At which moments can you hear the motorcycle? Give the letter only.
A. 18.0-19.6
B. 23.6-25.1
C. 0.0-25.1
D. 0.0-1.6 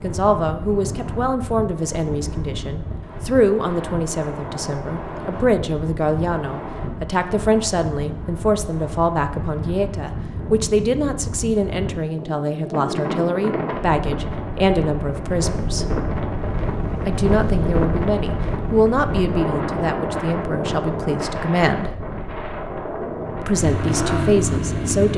B.